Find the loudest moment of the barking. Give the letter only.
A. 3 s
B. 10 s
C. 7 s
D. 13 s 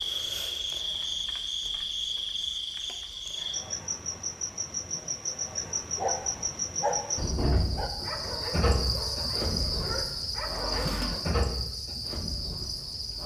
C.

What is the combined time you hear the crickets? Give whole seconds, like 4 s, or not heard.
13 s.